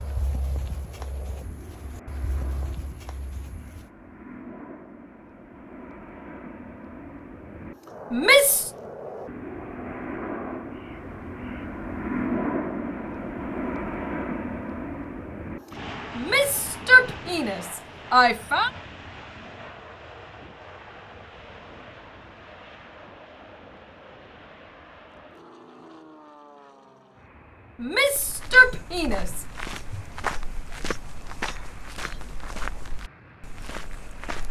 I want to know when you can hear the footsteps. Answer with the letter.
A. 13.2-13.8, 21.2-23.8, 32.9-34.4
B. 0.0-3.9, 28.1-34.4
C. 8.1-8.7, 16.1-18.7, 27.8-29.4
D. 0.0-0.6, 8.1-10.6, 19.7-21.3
B.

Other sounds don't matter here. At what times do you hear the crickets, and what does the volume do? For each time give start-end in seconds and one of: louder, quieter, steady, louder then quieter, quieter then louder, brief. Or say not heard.
not heard.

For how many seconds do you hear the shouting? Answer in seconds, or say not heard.
5 s.